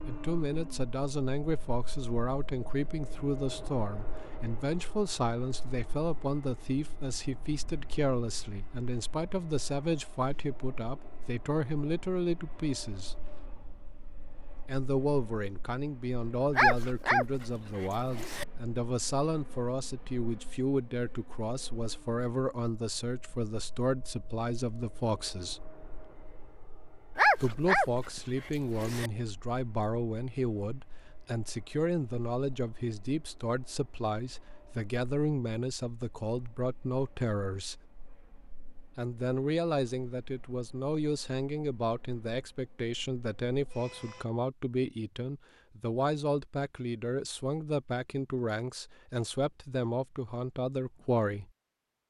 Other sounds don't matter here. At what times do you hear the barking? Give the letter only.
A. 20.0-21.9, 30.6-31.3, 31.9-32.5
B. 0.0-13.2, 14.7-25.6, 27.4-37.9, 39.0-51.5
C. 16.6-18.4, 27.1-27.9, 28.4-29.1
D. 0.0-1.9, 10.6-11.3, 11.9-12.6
C.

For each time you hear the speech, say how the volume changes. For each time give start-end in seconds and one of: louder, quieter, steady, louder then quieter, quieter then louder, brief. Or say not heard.
0.0-13.2 steady
14.7-25.6 steady
27.4-37.9 steady
39.0-51.5 steady.